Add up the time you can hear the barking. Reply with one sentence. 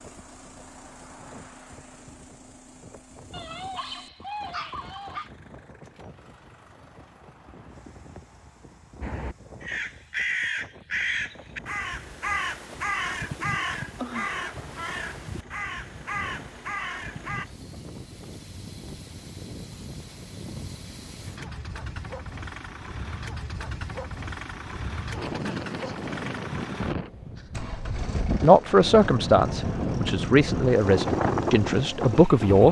You can hear the barking for 2 seconds altogether.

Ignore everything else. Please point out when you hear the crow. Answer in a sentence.
The crow can be heard from 9.0 to 17.4 s.